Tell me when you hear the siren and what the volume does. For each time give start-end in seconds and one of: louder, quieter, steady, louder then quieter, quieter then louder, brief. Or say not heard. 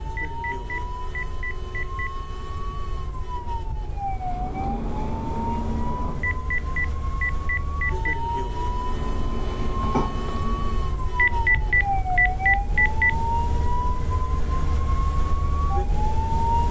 0.0-16.6 louder.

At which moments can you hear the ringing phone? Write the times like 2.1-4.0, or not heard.
0.1-2.1, 6.2-8.2, 11.2-13.2.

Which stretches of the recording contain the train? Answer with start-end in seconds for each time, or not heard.
4.1-6.5, 8.6-11.0.